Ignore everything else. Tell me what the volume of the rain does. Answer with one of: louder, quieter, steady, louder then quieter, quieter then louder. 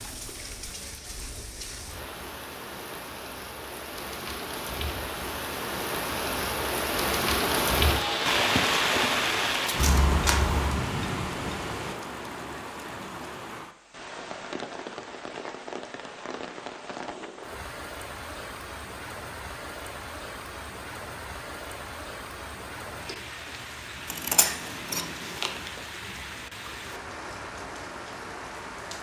louder then quieter.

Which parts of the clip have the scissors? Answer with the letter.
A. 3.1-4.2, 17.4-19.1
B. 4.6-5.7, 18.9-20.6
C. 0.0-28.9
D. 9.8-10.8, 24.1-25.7
D.